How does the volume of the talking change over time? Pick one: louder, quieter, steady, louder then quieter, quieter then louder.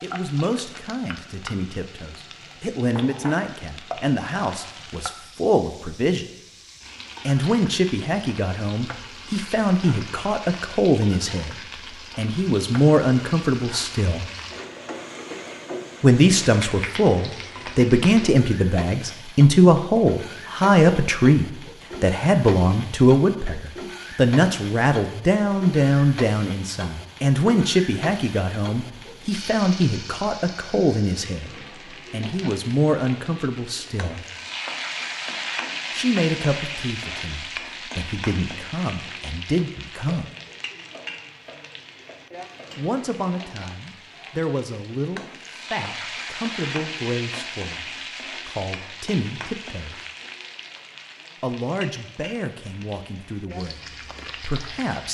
louder then quieter.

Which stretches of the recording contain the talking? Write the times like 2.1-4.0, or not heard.
0.0-6.2, 7.2-14.2, 16.0-34.2, 35.9-40.2, 42.8-50.0, 51.4-55.0.